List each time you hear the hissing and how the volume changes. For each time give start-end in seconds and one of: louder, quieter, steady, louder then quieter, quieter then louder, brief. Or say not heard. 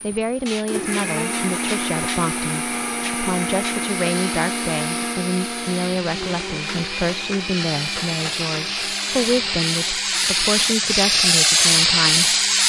0.0-12.6 louder.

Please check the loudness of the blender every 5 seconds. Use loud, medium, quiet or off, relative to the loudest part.
loud, medium, quiet.